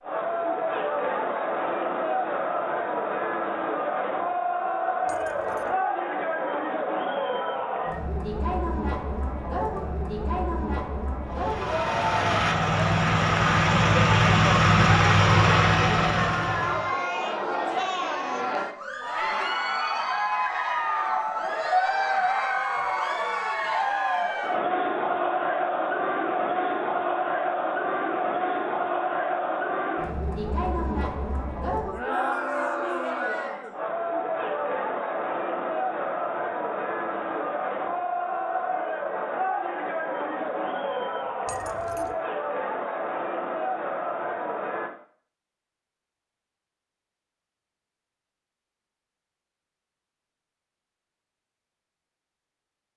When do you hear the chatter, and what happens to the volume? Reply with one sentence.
You can hear the chatter from 0.0 to 44.9 s, at a steady volume.